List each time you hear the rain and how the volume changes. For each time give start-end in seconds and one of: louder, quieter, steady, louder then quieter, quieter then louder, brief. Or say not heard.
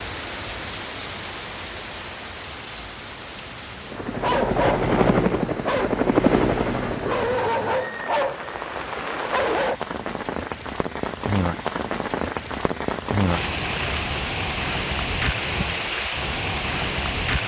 0.0-17.4 louder.